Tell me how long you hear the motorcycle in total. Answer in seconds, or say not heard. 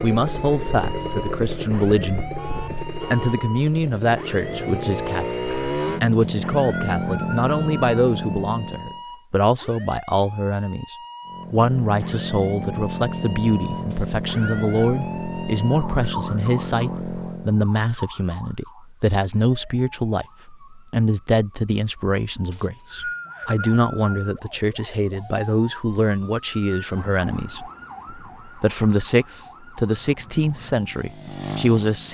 17 s.